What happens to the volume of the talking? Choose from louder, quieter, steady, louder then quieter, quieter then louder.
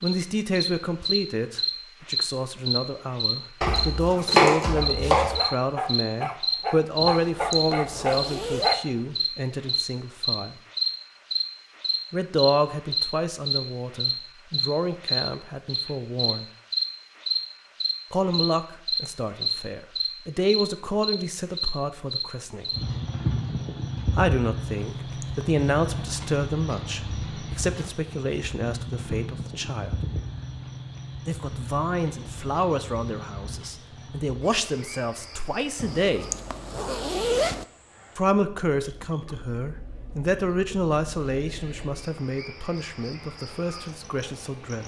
steady.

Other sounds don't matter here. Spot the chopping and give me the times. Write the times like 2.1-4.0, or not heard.
3.6-5.4.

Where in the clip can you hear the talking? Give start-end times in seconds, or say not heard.
0.0-10.6, 12.1-16.4, 18.1-22.7, 24.1-29.9, 31.2-36.2, 38.1-44.8.